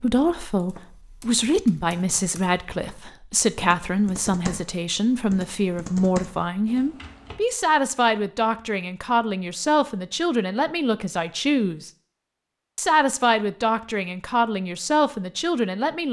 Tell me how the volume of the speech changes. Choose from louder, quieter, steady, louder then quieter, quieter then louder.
steady.